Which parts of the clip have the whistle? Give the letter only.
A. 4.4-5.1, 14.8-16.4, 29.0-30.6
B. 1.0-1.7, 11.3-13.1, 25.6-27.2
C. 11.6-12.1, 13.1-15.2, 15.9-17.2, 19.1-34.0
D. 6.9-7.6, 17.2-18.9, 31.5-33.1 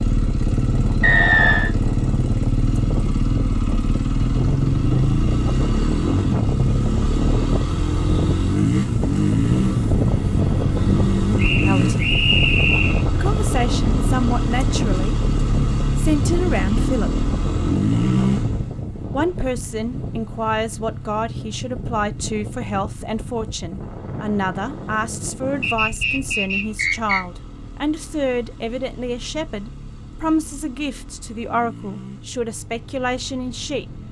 B.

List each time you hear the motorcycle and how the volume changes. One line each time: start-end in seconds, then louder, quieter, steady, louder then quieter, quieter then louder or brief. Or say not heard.
0.0-34.0 quieter.